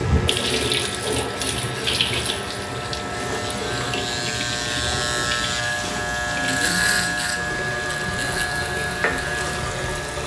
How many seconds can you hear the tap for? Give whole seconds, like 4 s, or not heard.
10 s.